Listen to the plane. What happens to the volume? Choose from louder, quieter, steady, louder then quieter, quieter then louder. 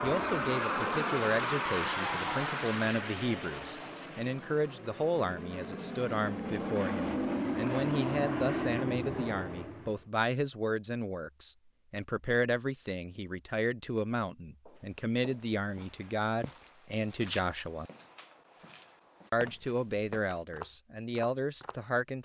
quieter then louder.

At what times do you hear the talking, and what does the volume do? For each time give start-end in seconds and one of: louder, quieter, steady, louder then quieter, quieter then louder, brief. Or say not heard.
0.0-17.9 steady
19.3-22.2 brief.